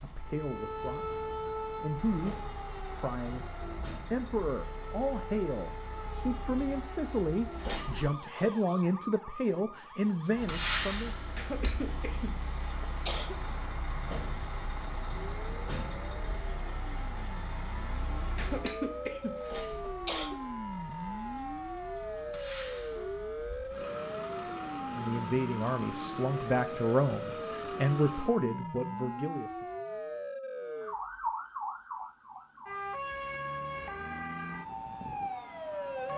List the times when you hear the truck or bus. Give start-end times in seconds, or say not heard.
0.0-8.2, 10.3-28.3.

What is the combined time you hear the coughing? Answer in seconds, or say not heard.
4 s.